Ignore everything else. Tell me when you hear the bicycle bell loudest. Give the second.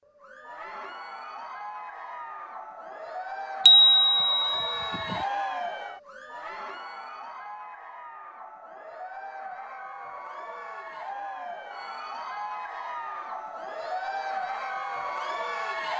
4 s.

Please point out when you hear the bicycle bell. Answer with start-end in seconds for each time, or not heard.
3.6-5.2.